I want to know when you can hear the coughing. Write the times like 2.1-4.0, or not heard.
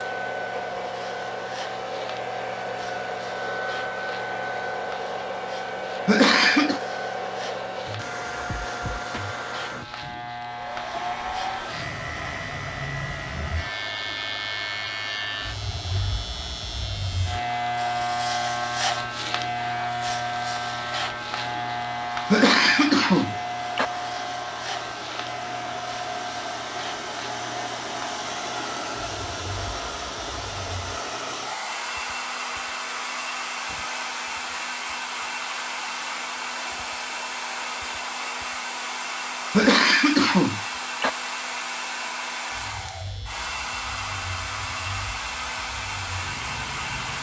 6.0-6.8, 22.3-23.9, 39.5-41.1.